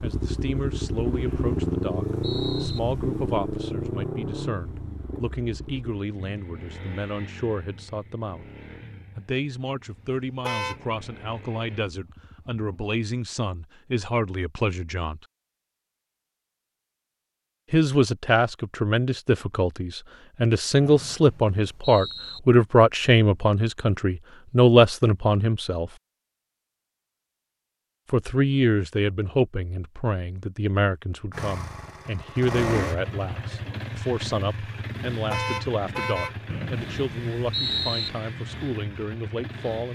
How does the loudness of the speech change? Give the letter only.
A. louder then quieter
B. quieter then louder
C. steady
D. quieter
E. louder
A.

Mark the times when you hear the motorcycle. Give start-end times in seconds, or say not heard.
0.0-12.6, 31.3-39.9.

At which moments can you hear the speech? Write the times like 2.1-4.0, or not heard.
0.0-8.4, 9.2-15.2, 17.7-25.9, 28.1-39.9.